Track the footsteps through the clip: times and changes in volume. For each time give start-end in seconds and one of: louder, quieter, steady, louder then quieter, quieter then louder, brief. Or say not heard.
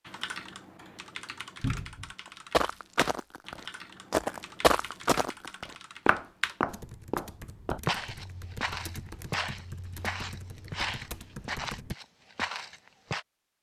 2.5-13.2 quieter.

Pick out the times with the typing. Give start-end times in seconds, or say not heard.
0.1-11.9.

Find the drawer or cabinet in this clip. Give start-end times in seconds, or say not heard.
1.6-2.1.